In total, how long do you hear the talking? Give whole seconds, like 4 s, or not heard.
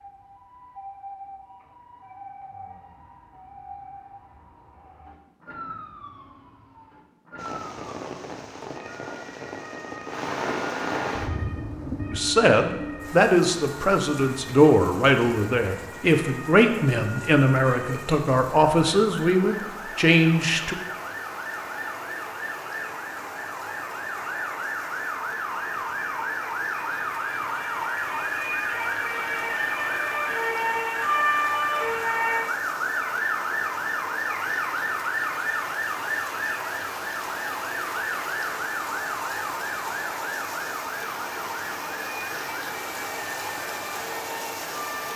9 s.